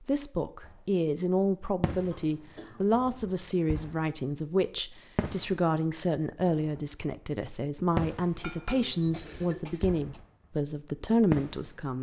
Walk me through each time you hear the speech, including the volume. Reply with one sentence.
The speech can be heard from 0.1 to 11.9 s, at a steady volume.